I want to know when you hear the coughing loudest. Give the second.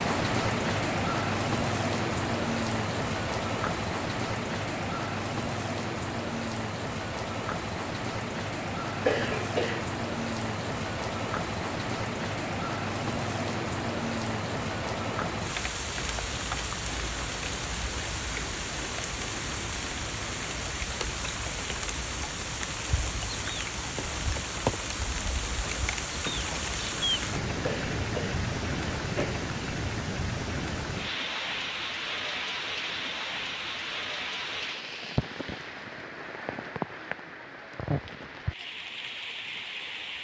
9 s.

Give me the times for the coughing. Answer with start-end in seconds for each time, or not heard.
8.9-9.9, 27.5-29.5.